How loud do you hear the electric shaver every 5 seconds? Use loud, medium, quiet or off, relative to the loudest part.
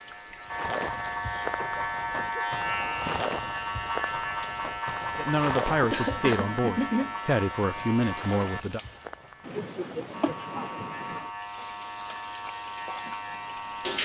loud, loud, medium.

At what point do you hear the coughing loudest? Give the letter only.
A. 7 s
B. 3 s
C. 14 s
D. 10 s
A.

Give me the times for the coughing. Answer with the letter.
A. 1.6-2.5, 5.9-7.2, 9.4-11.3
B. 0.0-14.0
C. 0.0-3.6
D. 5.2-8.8
A.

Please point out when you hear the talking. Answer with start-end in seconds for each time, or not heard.
5.2-8.8.